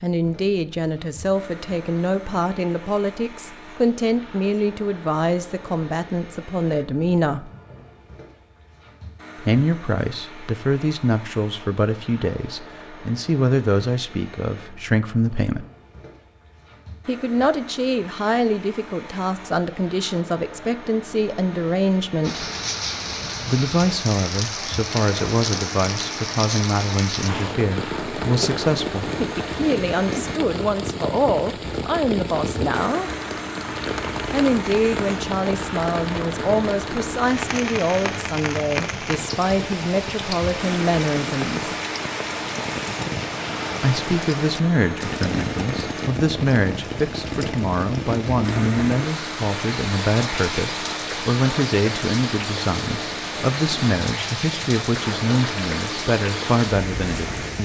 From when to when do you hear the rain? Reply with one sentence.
You can hear the rain from 22.2 to 57.6 s.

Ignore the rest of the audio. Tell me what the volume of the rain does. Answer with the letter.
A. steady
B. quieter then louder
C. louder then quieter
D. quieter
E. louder
A.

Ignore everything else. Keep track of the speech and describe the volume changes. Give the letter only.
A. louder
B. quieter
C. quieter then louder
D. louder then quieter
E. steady
E.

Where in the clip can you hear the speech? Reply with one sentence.
You can hear the speech from 0.0 to 7.5 s, from 9.4 to 15.7 s, from 17.1 to 22.4 s, from 23.4 to 33.1 s, from 34.3 to 41.8 s and from 43.8 to 57.6 s.